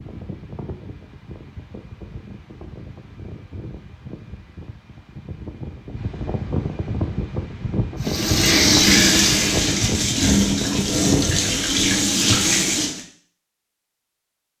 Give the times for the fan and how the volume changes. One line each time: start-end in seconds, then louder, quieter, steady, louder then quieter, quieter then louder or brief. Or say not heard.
0.0-11.7 louder.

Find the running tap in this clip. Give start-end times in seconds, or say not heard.
8.0-13.0.